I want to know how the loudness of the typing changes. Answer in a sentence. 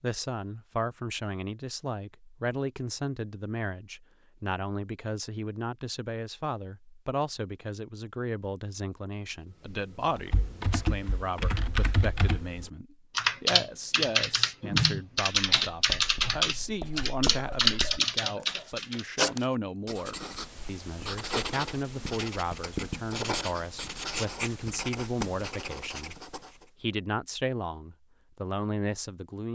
The volume of the typing goes up.